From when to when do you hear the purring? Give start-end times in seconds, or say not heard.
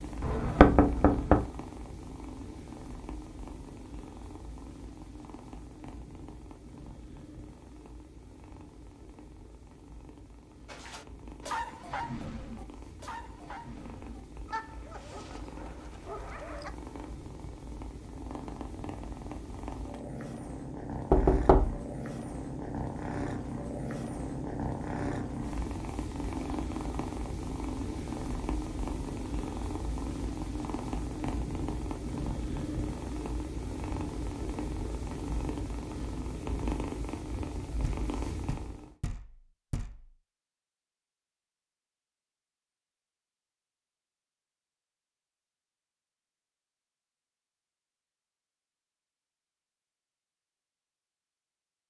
0.0-39.0.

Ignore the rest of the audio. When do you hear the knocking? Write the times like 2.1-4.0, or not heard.
0.2-1.4, 21.1-21.8, 37.8-40.1.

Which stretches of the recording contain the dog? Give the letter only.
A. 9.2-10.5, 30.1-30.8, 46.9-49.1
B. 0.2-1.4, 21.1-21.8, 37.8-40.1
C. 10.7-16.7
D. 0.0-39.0
C.